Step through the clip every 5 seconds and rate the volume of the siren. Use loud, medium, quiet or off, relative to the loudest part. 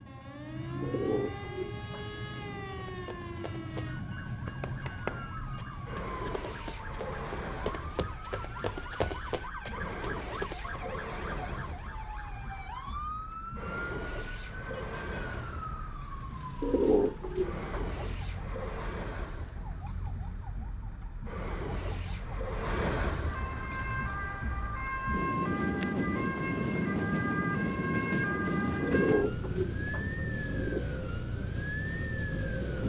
medium, medium, medium, medium, medium, loud, loud.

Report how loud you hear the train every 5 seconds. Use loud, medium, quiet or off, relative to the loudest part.
medium, medium, medium, medium, medium, loud, medium.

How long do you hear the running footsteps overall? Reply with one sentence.
You can hear the running footsteps for 8 seconds altogether.